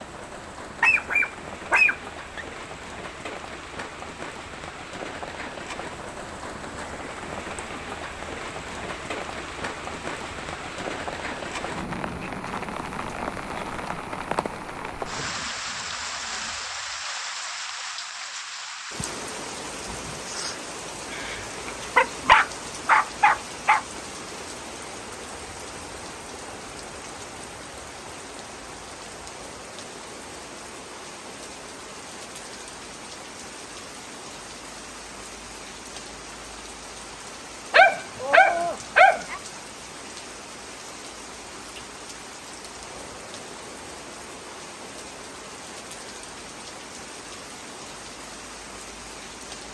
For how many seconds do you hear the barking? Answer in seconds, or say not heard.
6 s.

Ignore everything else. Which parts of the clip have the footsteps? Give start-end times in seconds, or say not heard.
not heard.